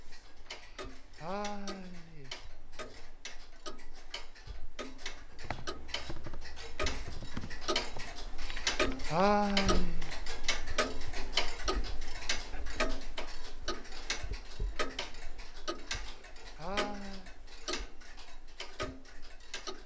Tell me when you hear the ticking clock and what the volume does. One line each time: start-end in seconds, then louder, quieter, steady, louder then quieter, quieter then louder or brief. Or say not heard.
0.0-19.8 louder then quieter.